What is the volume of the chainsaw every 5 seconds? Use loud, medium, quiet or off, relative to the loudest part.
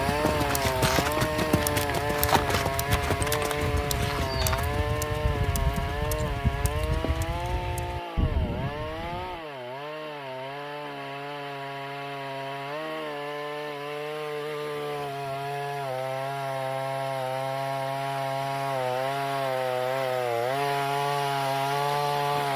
loud, medium, medium, loud, loud.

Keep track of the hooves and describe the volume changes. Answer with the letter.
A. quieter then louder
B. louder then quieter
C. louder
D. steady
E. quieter
E.